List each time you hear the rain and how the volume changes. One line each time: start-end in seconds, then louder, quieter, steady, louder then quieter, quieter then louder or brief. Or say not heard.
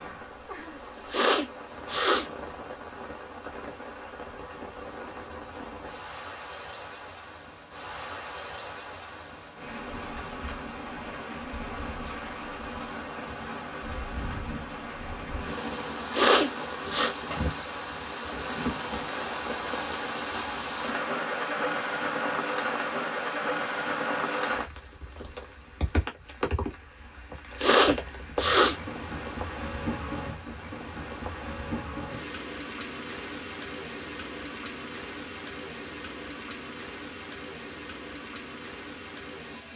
0.0-39.7 louder then quieter.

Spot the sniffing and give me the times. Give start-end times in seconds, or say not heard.
1.1-2.3, 16.1-17.1, 27.6-28.8.